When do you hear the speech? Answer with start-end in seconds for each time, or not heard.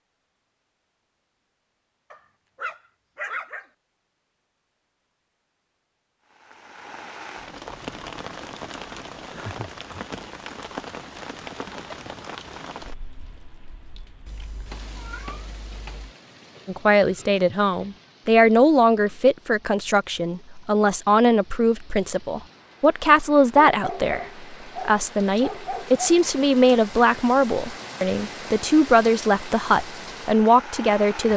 16.6-31.3.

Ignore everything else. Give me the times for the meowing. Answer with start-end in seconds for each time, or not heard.
14.2-16.0.